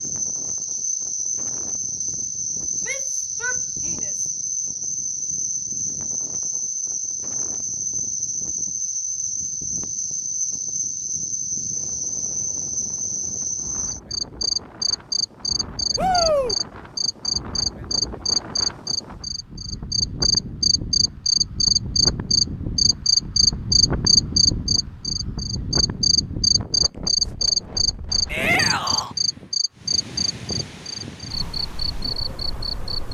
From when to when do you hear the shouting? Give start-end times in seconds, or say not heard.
2.8-4.2, 15.9-16.6, 28.2-29.1.